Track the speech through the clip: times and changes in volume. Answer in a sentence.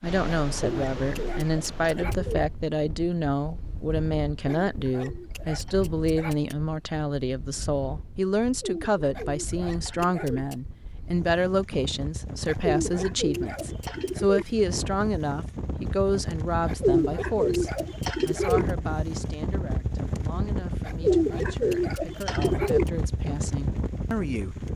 The speech can be heard from 0.0 to 24.6 s, getting quieter.